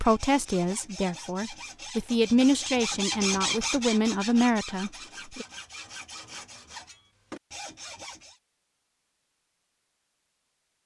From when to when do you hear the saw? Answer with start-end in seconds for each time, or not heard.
0.0-8.4.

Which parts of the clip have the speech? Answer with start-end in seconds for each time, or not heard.
0.0-5.5.